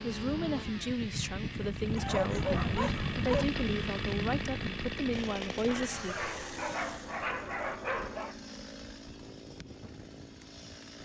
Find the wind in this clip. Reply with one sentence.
The wind can be heard from 0.0 to 11.0 s.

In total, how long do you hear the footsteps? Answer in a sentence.
The footsteps can't be heard in this clip.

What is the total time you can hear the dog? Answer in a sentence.
The dog can be heard for 4 seconds in total.